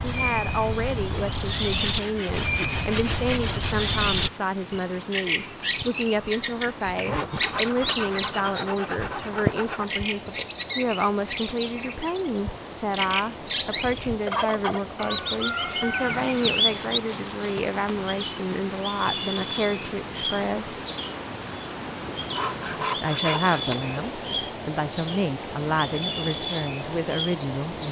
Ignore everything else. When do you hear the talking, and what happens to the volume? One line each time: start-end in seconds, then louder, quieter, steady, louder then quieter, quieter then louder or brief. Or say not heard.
0.0-20.8 steady
23.0-27.8 steady.